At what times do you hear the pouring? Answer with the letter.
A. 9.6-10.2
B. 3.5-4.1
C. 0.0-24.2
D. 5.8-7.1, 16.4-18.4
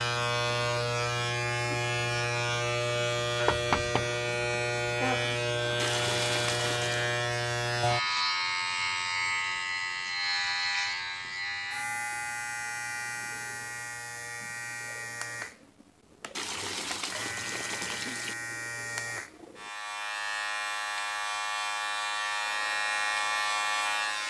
D.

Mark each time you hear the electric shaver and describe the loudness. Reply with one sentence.
You can hear the electric shaver from 0.0 to 24.2 s, getting quieter then louder.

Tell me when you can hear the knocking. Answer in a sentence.
The knocking can be heard from 3.5 to 4.1 s.